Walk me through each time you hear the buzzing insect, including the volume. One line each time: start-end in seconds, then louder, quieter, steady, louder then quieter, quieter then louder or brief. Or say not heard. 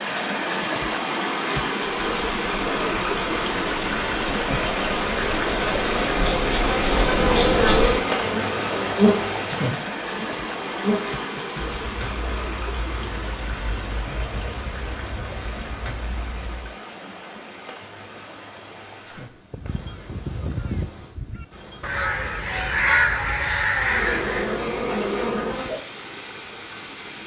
2.0-16.7 louder then quieter
23.8-25.8 brief.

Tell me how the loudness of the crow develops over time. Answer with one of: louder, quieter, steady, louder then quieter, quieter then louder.
louder.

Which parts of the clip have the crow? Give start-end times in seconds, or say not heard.
19.0-24.6.